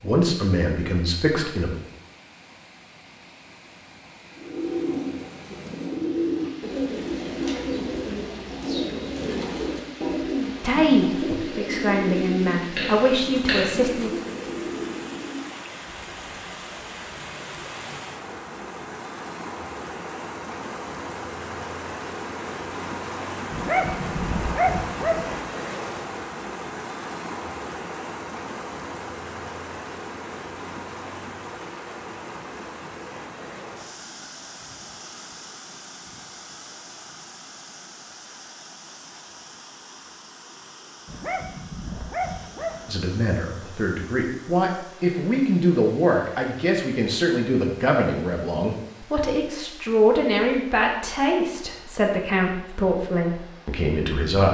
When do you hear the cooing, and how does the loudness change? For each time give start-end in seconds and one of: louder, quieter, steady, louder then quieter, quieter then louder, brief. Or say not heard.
4.3-15.5 steady.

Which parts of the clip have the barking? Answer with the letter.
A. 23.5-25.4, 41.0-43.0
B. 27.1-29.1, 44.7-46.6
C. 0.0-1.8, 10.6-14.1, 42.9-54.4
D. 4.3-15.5
A.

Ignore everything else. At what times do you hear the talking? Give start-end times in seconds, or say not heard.
0.0-1.8, 10.6-14.1, 42.9-54.4.